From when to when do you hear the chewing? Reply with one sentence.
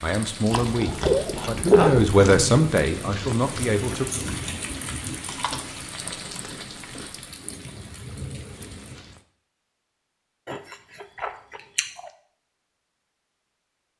The chewing can be heard from 0.5 to 2.4 s, from 5.2 to 7.2 s and from 10.4 to 12.1 s.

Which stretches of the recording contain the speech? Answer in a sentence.
You can hear the speech from 0.0 to 4.1 s.